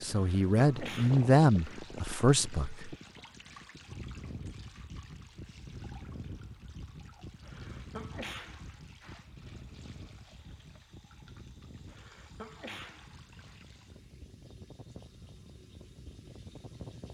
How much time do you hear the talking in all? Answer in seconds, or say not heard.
3 s.